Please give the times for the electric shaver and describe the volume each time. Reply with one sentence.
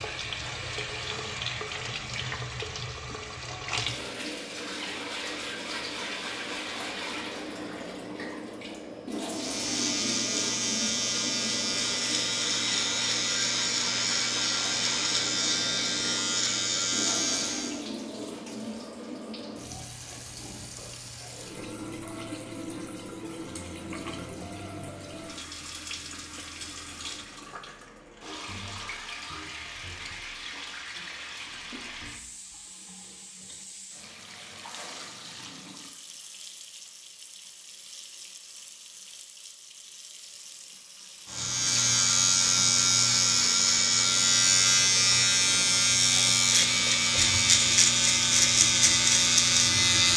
You can hear the electric shaver from 9.2 to 17.9 s, at a steady volume; and from 41.3 to 50.1 s, at a steady volume.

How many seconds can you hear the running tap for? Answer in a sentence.
The running tap can be heard for 50 seconds in total.